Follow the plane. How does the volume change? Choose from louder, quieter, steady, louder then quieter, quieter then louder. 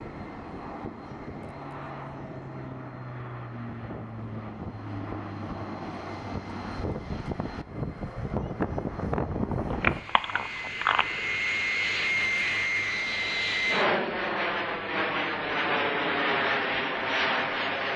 louder.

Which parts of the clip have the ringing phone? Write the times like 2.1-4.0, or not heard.
9.7-11.1.